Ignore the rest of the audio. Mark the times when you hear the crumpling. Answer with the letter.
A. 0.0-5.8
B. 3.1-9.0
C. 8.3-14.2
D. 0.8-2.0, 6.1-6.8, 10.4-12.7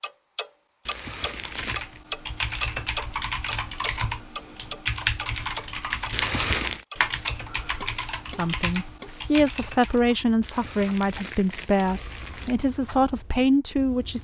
D.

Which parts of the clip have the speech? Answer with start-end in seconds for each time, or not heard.
8.3-14.2.